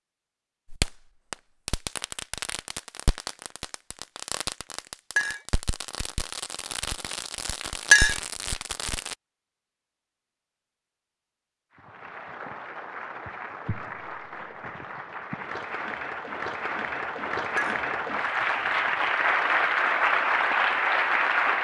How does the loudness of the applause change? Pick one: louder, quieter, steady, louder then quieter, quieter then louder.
louder.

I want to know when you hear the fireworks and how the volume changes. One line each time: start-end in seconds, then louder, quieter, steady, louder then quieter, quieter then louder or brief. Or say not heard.
0.7-9.2 steady.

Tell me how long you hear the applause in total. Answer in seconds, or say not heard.
10 s.